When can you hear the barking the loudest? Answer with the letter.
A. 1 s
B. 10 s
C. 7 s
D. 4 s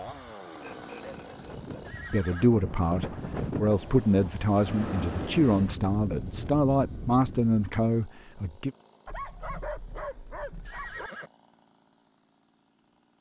B.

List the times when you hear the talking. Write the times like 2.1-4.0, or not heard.
2.1-8.7.